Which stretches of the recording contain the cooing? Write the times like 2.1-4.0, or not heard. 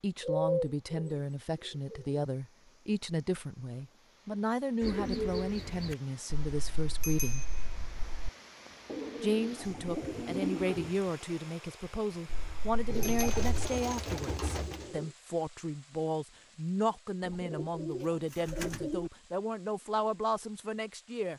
0.2-2.2, 4.8-6.0, 8.8-10.9, 12.8-15.1, 17.2-19.1.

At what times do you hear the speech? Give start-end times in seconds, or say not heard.
0.0-7.5, 9.2-21.3.